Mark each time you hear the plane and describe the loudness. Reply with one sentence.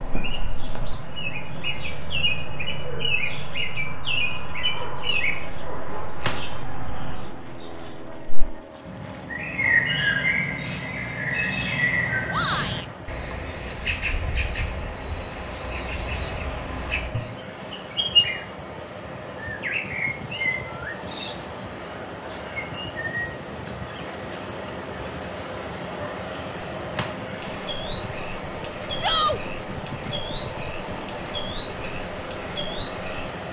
The plane can be heard from 0.0 to 33.4 s, getting louder.